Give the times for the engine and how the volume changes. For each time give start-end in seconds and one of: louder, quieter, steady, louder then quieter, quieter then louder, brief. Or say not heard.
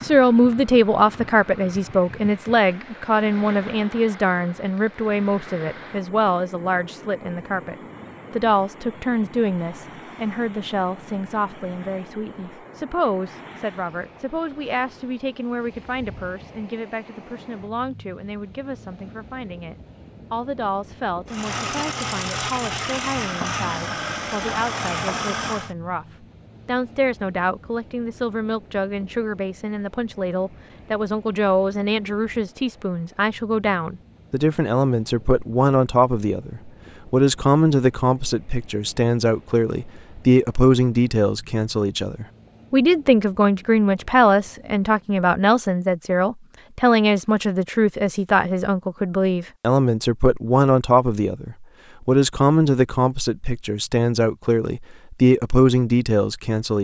21.2-25.8 steady.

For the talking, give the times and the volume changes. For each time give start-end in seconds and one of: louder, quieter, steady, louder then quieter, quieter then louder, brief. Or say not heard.
0.0-56.8 quieter then louder.